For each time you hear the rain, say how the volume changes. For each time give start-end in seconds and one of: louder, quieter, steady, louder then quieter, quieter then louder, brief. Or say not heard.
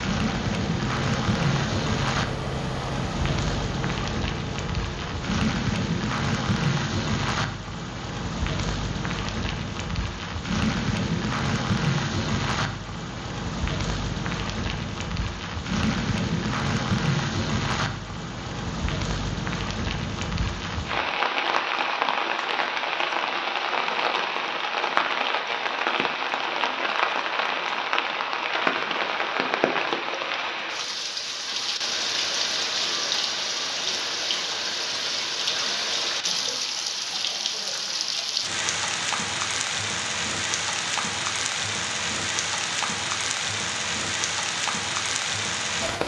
0.0-46.0 steady.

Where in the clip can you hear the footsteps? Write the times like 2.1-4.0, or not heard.
not heard.